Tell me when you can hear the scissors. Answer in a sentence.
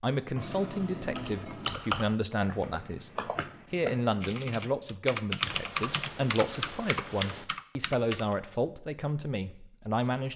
You can hear the scissors from 0.3 to 1.8 s and from 5.5 to 7.5 s.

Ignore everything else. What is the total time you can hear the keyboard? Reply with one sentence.
The keyboard can be heard for 7 seconds in total.